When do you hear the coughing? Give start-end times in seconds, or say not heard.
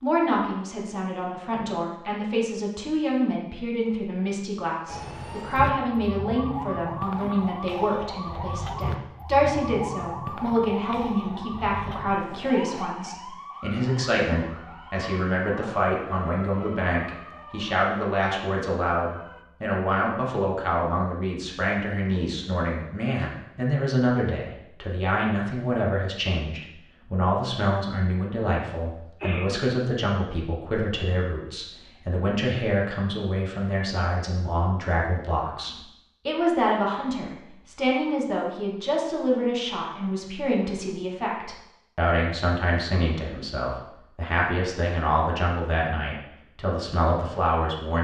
29.2-29.6.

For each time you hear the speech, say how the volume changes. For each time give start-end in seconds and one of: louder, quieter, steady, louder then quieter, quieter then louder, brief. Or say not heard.
0.0-47.9 steady.